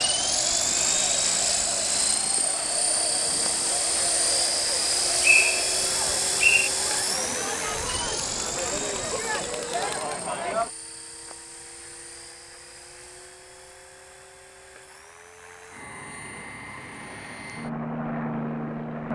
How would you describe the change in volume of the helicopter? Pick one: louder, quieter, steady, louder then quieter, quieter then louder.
quieter then louder.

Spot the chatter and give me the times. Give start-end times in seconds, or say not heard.
0.0-10.7.